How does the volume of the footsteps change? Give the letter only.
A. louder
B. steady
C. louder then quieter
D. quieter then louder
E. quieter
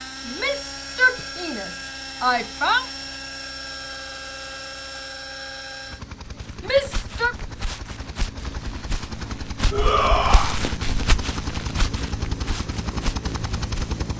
C.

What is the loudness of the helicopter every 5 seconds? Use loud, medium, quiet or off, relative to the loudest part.
loud, medium, loud.